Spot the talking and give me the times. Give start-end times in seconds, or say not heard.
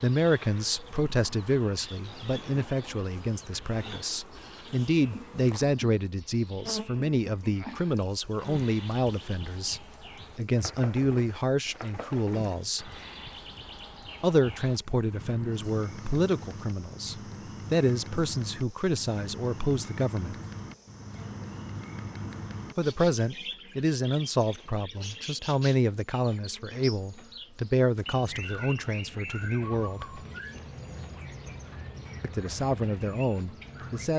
0.0-12.9, 14.2-20.4, 22.8-30.2, 32.2-34.1.